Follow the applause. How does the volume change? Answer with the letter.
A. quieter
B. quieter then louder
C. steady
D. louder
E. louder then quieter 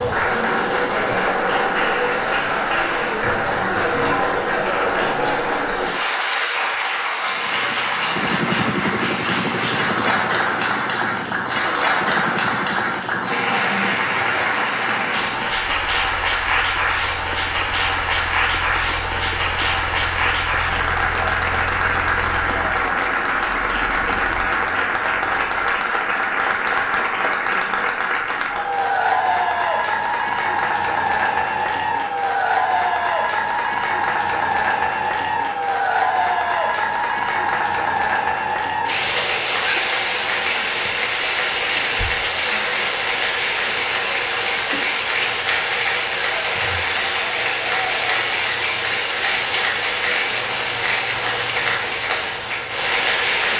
C.